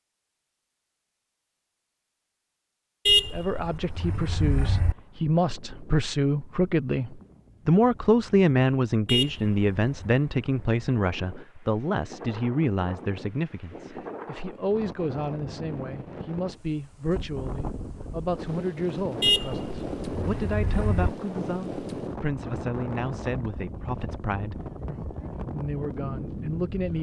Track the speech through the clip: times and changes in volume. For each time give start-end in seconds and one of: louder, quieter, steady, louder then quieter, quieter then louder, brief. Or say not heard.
3.3-26.9 quieter.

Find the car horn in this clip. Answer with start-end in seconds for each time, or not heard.
3.0-5.0, 9.1-10.2, 19.2-21.1.